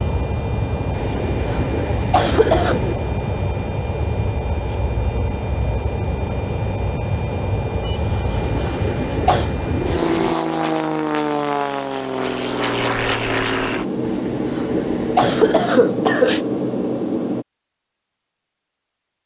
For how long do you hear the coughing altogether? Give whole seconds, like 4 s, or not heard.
4 s.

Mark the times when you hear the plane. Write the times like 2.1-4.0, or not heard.
0.0-17.4.